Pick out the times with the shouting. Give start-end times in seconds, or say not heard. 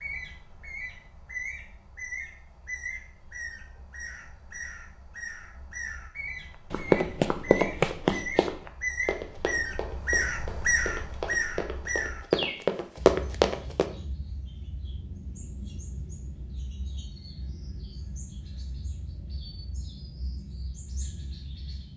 not heard.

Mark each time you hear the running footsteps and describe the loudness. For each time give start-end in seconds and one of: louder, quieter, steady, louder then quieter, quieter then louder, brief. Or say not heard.
6.7-13.8 quieter then louder.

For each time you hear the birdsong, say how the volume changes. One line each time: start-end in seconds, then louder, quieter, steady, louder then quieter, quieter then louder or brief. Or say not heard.
0.0-21.9 louder then quieter.